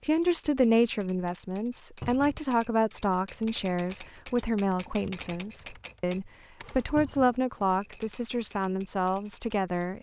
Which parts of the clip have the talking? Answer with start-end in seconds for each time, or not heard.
0.0-9.9.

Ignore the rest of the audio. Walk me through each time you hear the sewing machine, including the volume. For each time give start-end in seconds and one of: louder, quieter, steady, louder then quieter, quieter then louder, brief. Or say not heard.
not heard.